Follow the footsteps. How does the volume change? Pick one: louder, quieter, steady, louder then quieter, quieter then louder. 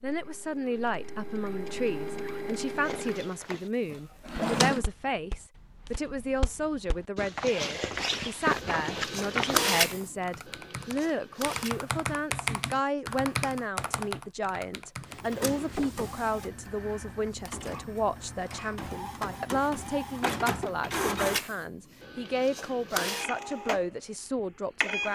louder.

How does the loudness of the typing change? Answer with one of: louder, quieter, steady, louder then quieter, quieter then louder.
louder then quieter.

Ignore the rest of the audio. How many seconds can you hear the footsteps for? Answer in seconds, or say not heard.
7 s.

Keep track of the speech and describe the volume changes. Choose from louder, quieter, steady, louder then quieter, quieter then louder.
steady.